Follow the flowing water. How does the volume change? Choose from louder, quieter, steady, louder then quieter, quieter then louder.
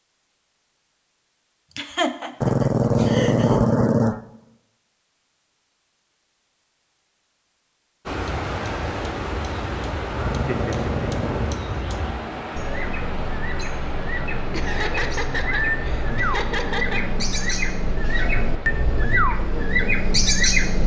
quieter.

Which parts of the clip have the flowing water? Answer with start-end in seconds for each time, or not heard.
8.1-20.8.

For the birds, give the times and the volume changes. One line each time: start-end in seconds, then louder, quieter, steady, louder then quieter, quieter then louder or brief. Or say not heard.
8.1-20.8 louder.